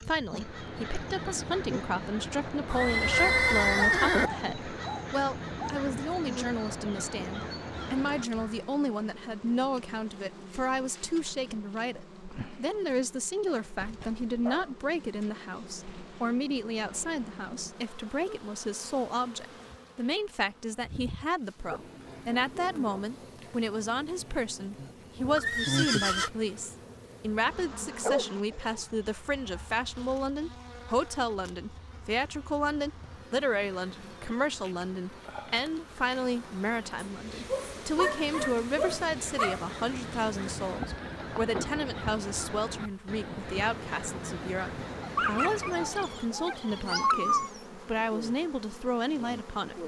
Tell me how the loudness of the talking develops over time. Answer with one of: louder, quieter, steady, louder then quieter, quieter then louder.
steady.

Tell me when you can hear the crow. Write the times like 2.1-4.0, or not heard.
0.2-8.7, 38.1-46.4.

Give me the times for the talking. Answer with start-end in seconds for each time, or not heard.
0.1-49.8.